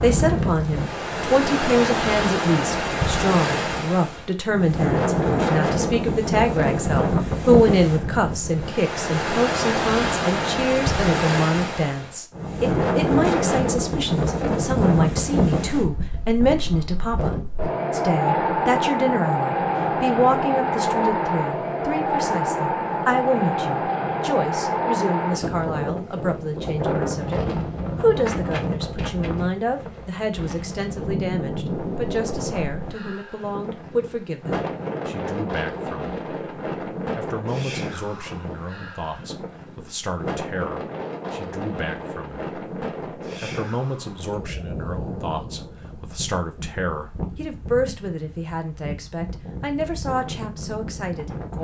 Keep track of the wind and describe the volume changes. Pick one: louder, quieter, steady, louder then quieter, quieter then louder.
quieter.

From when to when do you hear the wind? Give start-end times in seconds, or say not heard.
0.0-51.5.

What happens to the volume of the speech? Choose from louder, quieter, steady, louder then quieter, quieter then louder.
quieter.